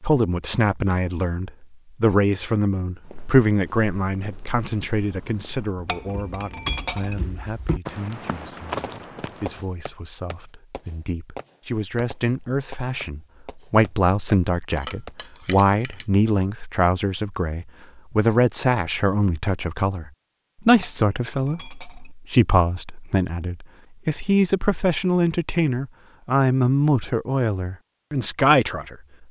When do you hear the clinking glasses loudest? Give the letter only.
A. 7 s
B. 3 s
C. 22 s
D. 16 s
A.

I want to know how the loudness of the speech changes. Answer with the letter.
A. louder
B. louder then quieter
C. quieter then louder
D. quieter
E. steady
C.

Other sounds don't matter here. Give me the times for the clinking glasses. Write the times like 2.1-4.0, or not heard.
5.8-7.2, 14.7-16.1, 20.8-22.1.